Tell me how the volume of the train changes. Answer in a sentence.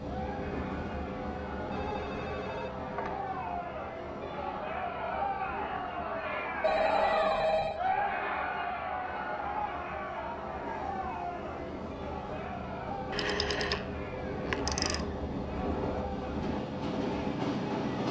The loudness of the train goes down, then up.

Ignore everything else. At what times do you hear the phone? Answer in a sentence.
You can hear the phone from 1.7 to 3.1 s, from 6.6 to 7.8 s and from 13.1 to 15.0 s.